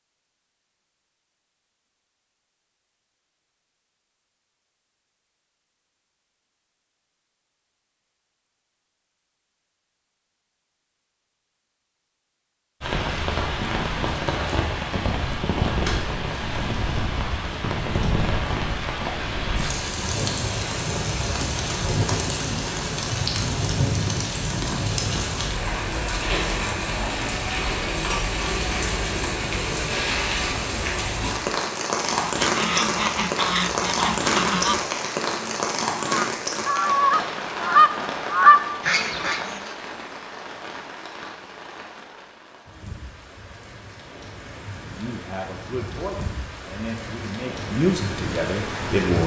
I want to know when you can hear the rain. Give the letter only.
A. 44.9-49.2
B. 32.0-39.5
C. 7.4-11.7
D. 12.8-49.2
D.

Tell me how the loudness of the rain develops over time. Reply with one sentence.
The loudness of the rain goes down.